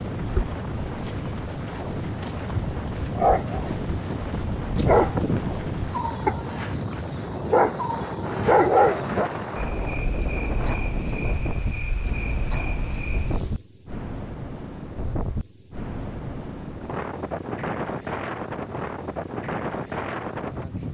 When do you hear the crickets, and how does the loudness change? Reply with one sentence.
You can hear the crickets from 0.0 to 20.9 s, getting quieter.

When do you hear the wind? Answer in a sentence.
The wind can be heard from 0.0 to 20.9 s.